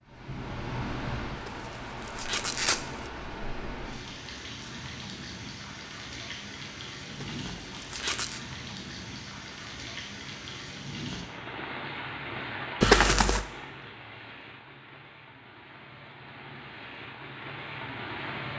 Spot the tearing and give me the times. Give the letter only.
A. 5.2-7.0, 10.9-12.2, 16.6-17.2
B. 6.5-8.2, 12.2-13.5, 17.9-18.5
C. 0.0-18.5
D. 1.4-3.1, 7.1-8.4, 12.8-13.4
D.